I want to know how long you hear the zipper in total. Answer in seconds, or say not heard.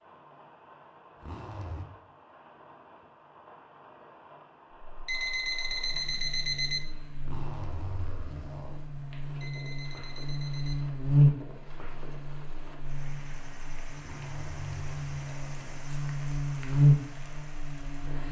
4 s.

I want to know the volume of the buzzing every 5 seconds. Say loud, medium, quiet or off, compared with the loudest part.
off, quiet, loud, loud.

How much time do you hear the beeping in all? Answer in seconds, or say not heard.
3 s.